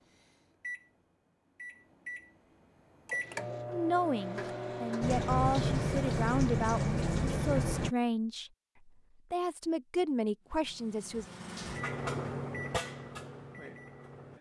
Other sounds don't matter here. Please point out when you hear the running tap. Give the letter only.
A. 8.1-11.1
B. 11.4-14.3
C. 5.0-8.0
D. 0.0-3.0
C.